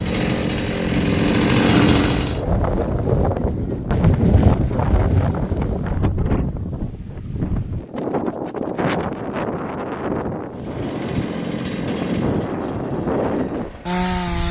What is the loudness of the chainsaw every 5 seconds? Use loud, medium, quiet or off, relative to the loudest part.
loud, off, medium.